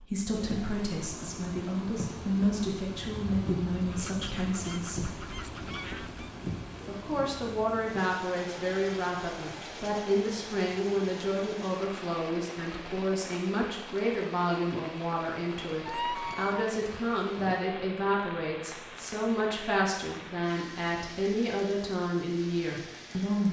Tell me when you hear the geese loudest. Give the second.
16 s.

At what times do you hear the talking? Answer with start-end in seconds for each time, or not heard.
0.0-5.2, 6.8-23.4.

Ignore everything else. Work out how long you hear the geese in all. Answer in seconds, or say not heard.
4 s.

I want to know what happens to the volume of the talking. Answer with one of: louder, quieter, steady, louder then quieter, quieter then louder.
steady.